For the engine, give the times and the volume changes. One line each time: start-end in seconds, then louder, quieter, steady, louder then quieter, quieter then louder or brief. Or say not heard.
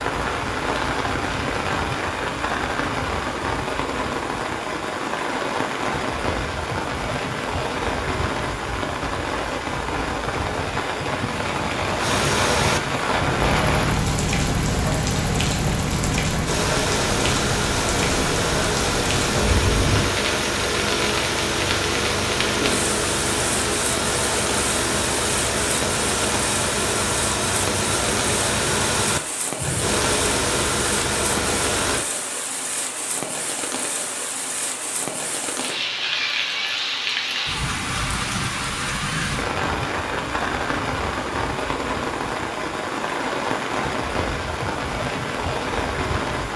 11.9-32.0 steady.